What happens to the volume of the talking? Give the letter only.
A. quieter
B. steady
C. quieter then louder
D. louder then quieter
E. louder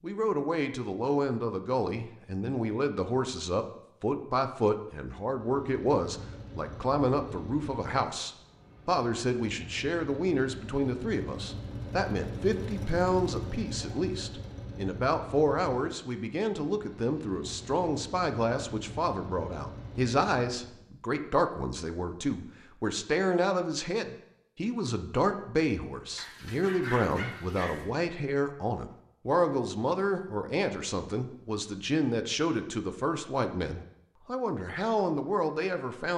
B.